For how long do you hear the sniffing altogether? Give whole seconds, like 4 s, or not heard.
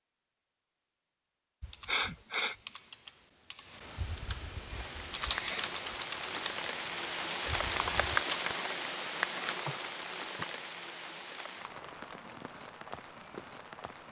2 s.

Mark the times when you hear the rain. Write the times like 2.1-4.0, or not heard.
4.7-14.0.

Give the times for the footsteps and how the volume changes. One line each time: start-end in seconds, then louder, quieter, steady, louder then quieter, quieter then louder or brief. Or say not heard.
not heard.